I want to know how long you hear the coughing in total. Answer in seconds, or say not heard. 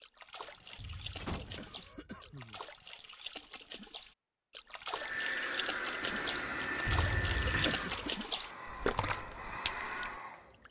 3 s.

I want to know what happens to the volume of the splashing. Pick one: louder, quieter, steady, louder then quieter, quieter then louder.
louder.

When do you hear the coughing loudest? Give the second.
8 s.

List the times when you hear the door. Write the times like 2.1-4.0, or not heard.
0.5-1.8, 6.0-7.8.